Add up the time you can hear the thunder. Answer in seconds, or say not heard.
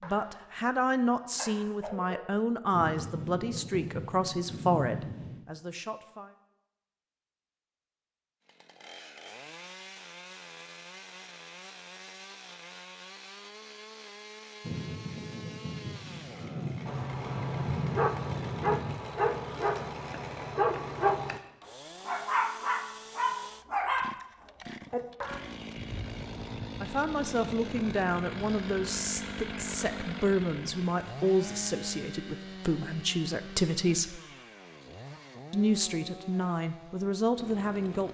10 s.